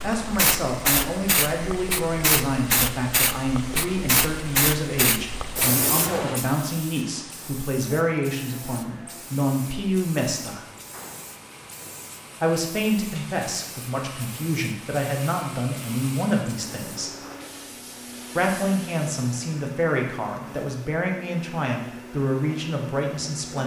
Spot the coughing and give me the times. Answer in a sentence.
You can't hear the coughing here.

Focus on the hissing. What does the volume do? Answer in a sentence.
The volume of the hissing goes down.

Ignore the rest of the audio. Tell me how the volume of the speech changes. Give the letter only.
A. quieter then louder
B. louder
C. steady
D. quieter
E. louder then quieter
C.